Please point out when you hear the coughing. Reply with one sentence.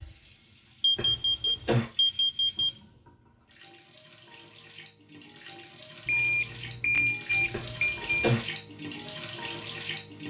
You can hear the coughing from 0.9 to 1.9 s and from 7.5 to 8.4 s.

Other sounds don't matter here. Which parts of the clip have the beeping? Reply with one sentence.
The beeping can be heard from 0.8 to 2.8 s and from 6.0 to 8.3 s.